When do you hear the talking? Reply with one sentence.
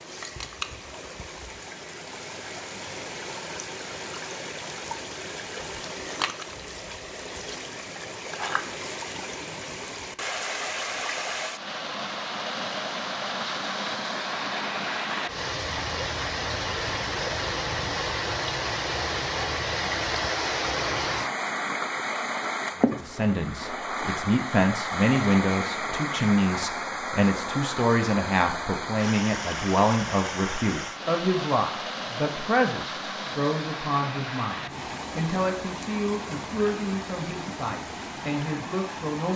You can hear the talking from 22.8 to 39.3 s.